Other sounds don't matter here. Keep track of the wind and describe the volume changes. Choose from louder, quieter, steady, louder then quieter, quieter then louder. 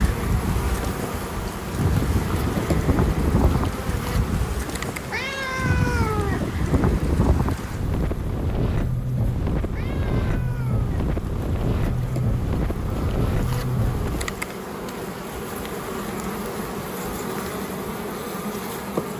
steady.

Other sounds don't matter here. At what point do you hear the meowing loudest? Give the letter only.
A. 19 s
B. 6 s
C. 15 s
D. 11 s
B.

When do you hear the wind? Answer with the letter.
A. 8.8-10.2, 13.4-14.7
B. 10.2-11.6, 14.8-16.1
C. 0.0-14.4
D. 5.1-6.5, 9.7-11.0
C.